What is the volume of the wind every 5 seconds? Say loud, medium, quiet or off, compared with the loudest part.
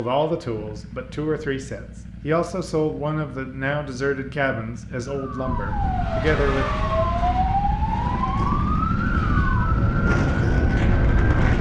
off, medium, loud.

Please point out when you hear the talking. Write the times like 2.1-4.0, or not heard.
0.0-6.7.